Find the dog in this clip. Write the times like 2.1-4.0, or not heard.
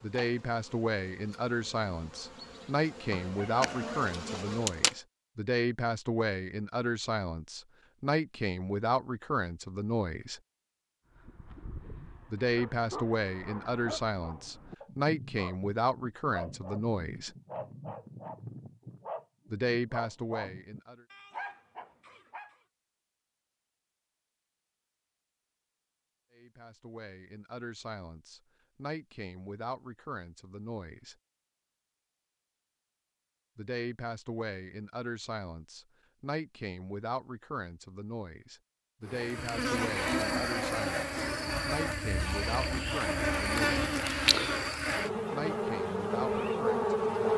11.1-22.6.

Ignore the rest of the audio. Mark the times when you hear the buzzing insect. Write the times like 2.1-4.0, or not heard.
0.0-5.0, 39.0-47.3.